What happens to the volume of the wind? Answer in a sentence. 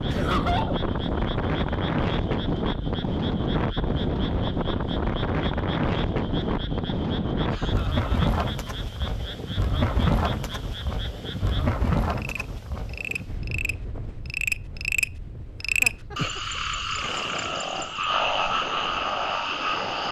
The volume of the wind goes down.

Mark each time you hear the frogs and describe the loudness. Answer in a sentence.
The frogs can be heard from 0.0 to 20.0 s, getting louder.